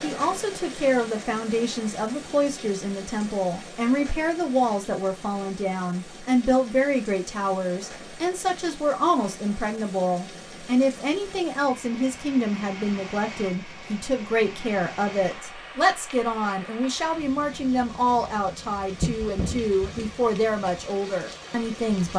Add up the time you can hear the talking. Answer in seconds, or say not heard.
22 s.